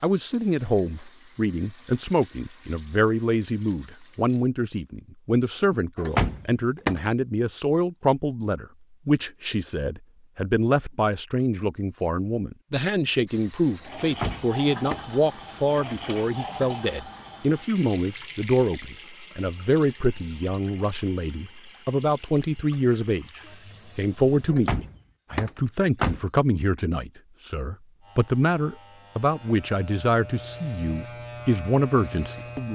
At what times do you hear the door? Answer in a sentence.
You can hear the door from 6.0 to 7.0 s, from 14.0 to 15.2 s and from 24.5 to 26.2 s.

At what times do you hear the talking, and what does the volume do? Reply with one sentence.
You can hear the talking from 0.0 to 32.6 s, at a steady volume.